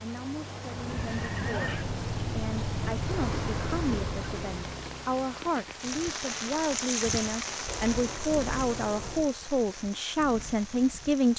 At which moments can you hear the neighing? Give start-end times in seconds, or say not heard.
0.8-1.9, 7.7-9.3.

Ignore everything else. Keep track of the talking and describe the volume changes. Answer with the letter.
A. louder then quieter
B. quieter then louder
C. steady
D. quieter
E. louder
E.